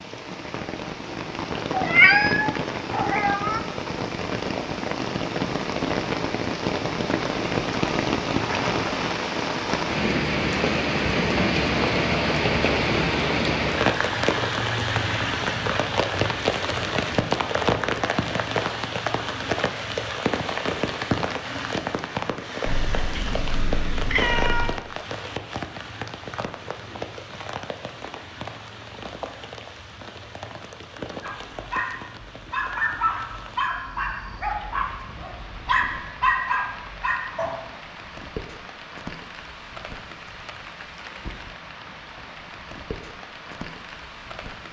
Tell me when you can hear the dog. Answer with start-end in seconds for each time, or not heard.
31.2-37.5.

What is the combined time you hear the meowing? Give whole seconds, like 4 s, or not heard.
4 s.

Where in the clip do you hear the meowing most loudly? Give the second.
2 s.